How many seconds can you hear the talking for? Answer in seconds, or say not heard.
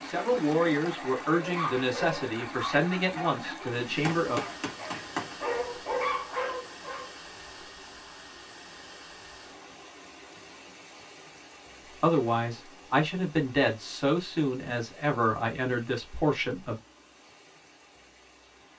9 s.